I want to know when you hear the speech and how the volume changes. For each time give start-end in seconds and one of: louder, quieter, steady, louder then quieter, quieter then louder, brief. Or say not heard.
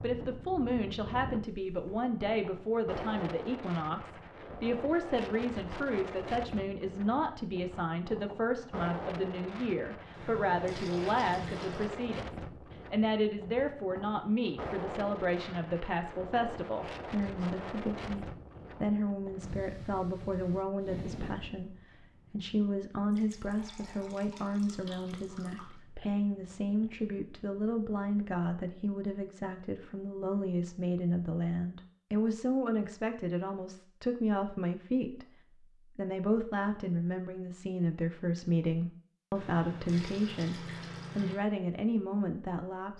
0.0-35.2 steady
36.0-42.9 steady.